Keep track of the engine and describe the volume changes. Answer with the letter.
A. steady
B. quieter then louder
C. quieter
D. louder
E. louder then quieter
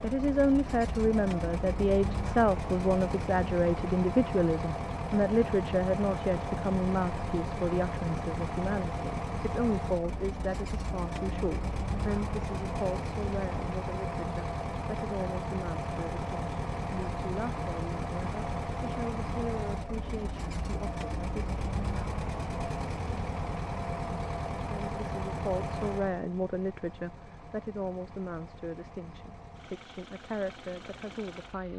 C.